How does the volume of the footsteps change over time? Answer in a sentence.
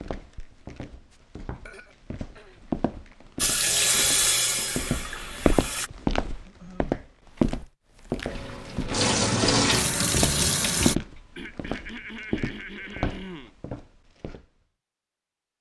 The volume of the footsteps goes up, then down.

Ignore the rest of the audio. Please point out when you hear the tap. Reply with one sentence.
The tap can be heard from 3.4 to 5.9 s and from 8.2 to 10.9 s.